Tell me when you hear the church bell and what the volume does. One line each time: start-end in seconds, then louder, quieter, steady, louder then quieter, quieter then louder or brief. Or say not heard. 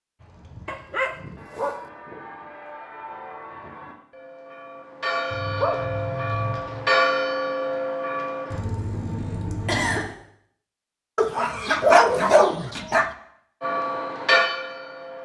0.2-8.6 louder
13.6-15.2 brief.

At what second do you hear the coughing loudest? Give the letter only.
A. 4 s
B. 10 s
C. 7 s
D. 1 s
B.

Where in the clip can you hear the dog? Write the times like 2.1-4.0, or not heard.
0.7-1.9, 5.3-6.9, 11.2-13.1.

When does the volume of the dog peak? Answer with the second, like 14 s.
12 s.